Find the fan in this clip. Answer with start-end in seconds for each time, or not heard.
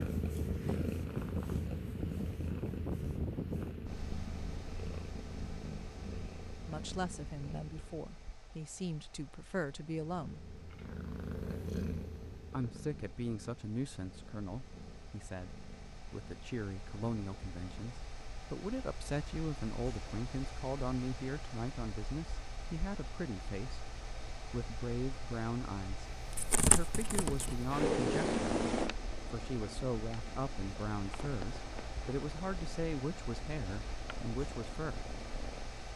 0.0-35.9.